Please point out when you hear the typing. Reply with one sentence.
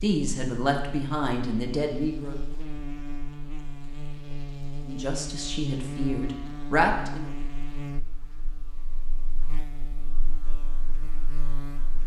You can't hear the typing here.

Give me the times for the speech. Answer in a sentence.
The speech can be heard from 0.0 to 2.4 s and from 4.8 to 7.3 s.